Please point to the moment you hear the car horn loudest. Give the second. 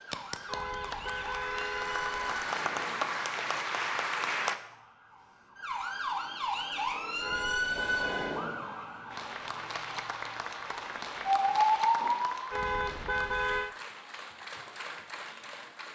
13 s.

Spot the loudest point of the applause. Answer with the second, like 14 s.
4 s.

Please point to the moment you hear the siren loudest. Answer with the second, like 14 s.
12 s.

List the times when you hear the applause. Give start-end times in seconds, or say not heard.
0.0-4.6, 9.1-15.8.